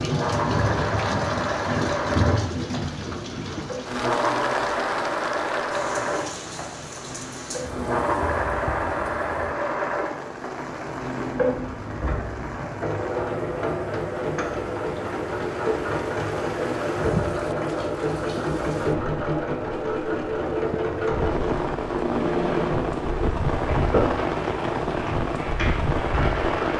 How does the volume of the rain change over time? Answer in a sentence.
The loudness of the rain goes down, then up.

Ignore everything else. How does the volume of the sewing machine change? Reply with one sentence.
The volume of the sewing machine stays about the same.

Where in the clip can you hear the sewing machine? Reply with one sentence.
The sewing machine can be heard from 0.0 to 26.7 s.